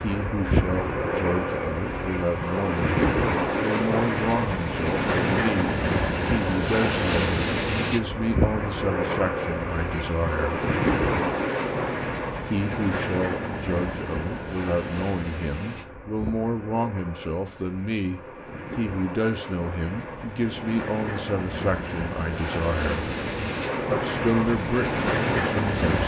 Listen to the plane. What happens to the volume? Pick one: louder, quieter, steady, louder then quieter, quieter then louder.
quieter then louder.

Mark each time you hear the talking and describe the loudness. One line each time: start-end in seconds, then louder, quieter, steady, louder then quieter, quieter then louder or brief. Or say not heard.
0.0-10.6 steady
12.5-23.1 steady
23.9-26.0 brief.